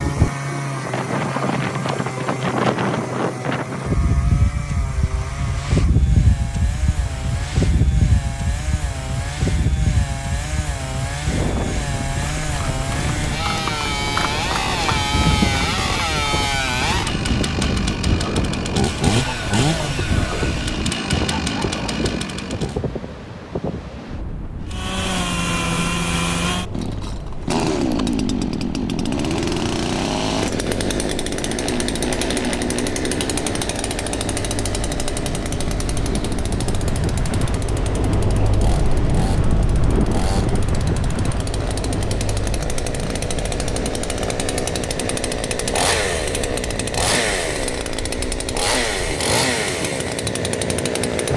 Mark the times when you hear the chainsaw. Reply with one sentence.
The chainsaw can be heard from 0.0 to 22.8 s and from 24.6 to 51.3 s.